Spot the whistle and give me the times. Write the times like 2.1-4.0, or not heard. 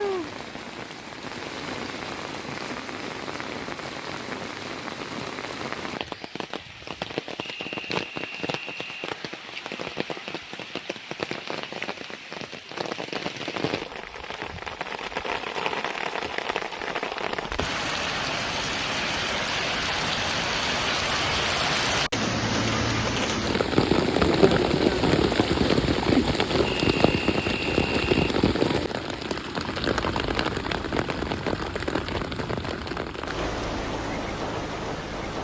7.4-9.1, 26.6-28.4.